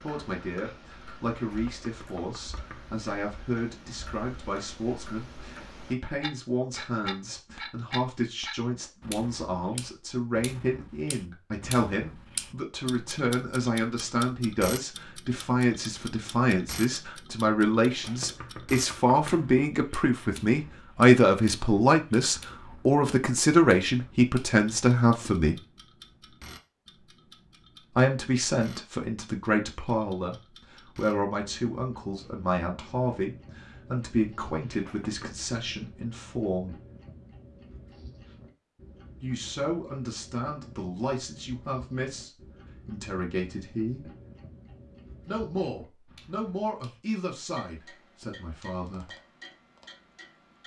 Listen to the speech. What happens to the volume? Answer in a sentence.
The loudness of the speech goes up, then down.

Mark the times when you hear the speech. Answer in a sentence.
The speech can be heard from 0.0 to 25.6 s, from 27.9 to 36.8 s, from 39.2 to 44.0 s and from 45.2 to 49.1 s.